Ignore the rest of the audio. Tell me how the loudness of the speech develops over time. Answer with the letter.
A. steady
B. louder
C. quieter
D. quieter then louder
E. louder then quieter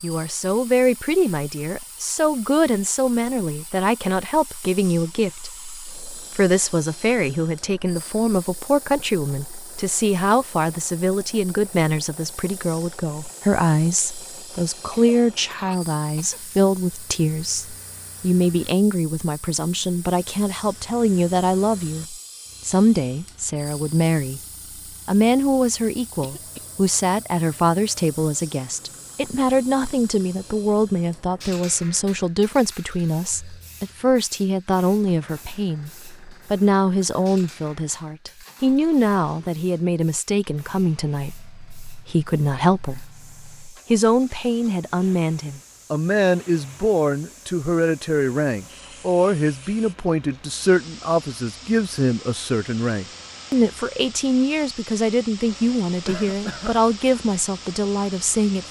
A.